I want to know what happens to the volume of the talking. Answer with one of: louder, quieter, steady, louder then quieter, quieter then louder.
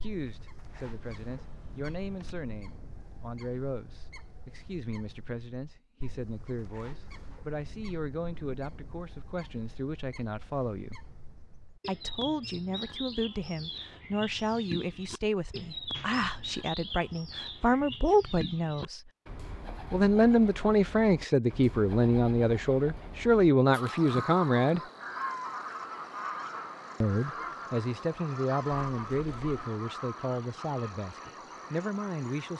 louder then quieter.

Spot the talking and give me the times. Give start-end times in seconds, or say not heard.
0.0-11.0, 11.8-19.0, 19.9-24.8, 27.0-32.5.